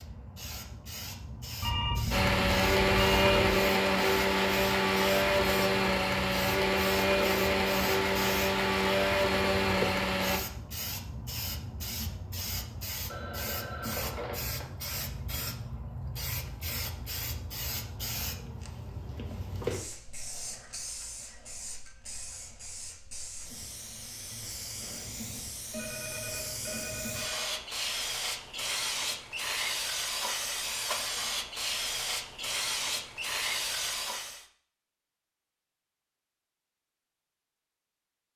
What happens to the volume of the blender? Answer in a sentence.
The loudness of the blender stays about the same.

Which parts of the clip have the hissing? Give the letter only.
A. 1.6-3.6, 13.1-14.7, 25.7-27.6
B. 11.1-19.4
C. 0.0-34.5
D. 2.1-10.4
C.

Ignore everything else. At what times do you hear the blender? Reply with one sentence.
You can hear the blender from 2.1 to 10.4 s.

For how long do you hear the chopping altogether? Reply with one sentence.
You can't hear the chopping here.